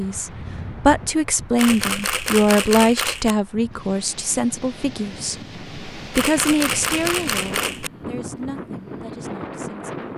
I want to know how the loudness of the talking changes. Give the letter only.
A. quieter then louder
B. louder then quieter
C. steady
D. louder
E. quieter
E.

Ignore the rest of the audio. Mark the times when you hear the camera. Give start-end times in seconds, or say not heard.
1.6-3.4, 6.1-7.9.